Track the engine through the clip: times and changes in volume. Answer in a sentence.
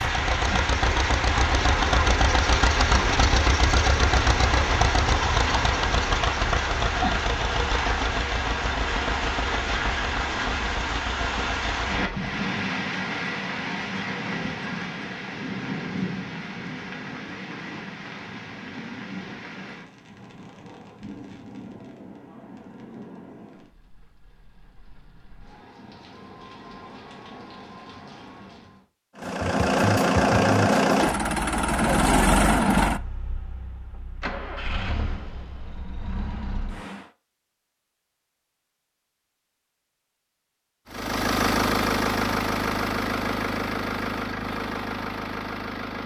You can hear the engine from 0.0 to 12.3 s, getting quieter; from 29.1 to 37.1 s, getting quieter; and from 40.9 to 46.0 s, getting quieter.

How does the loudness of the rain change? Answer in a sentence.
The loudness of the rain goes down.